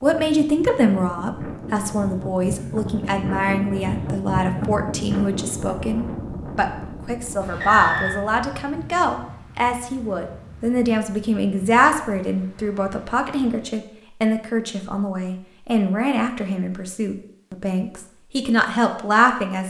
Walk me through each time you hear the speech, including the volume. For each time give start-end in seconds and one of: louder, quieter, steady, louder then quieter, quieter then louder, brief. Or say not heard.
0.0-19.6 steady.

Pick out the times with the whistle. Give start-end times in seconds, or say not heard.
7.5-8.2.